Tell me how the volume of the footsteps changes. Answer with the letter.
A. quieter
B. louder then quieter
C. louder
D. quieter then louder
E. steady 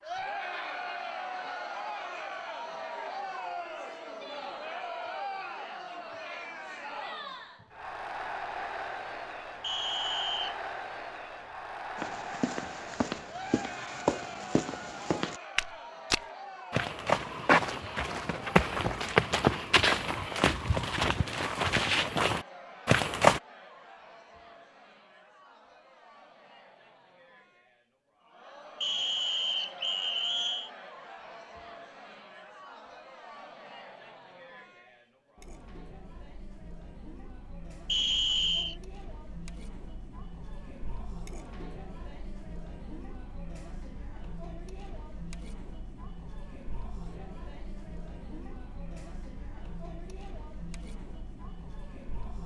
C.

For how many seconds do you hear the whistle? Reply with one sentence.
You can hear the whistle for 4 seconds altogether.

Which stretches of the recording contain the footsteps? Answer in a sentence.
You can hear the footsteps from 11.9 to 23.4 s.